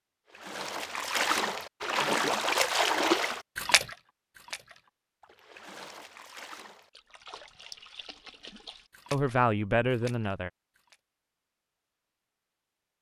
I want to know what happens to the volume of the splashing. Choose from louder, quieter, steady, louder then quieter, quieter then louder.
quieter.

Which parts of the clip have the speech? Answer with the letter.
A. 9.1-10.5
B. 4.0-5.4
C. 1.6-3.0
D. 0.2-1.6
A.